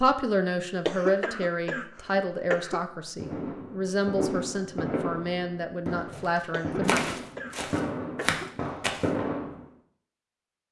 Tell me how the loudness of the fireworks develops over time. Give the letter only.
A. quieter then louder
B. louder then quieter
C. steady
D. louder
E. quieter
C.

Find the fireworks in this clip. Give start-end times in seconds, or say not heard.
3.1-9.7.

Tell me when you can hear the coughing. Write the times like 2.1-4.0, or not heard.
0.8-2.9, 6.5-8.6.